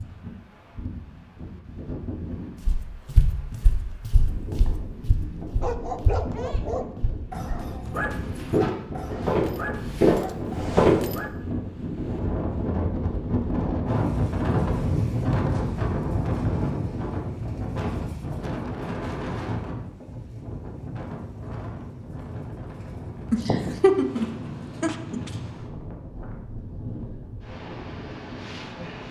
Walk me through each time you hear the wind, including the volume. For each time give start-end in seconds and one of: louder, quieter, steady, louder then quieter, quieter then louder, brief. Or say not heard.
0.0-29.0 louder then quieter.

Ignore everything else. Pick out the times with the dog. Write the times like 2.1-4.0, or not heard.
5.6-11.3.